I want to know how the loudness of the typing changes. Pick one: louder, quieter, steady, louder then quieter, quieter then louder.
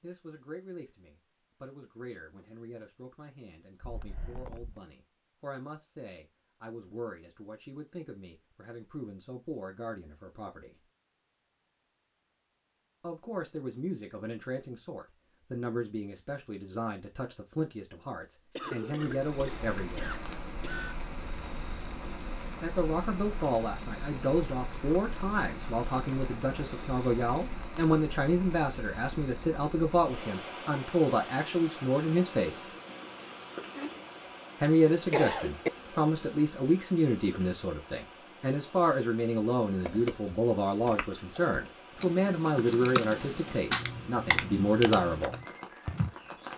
louder.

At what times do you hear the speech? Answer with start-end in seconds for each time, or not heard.
0.0-10.8, 13.0-20.1, 22.6-32.6, 34.6-45.4.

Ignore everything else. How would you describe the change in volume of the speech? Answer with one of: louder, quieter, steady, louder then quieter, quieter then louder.
louder.